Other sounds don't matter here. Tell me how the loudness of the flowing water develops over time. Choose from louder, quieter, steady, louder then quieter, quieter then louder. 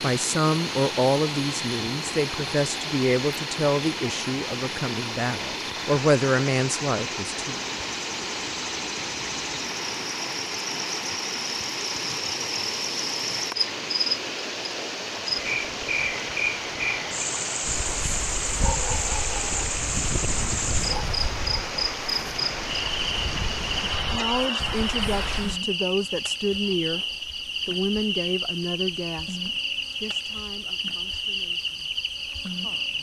steady.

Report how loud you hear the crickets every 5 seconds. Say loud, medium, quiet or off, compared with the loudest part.
medium, medium, loud, loud, loud, loud, loud.